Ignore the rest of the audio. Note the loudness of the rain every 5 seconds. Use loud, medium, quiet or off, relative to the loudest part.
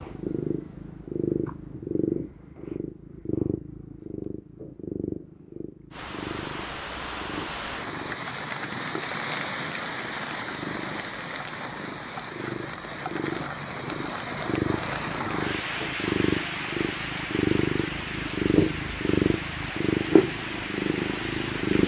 off, loud, loud, loud, loud.